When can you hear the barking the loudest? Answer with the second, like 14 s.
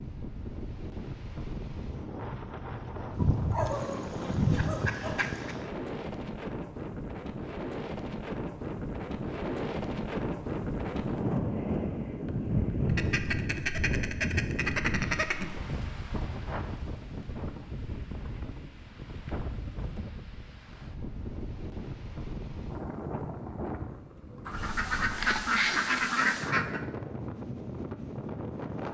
4 s.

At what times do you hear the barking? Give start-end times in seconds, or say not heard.
3.5-5.2.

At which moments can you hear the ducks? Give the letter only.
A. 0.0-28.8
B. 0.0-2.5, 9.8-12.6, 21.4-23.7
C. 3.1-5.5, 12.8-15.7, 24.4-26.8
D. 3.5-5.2
C.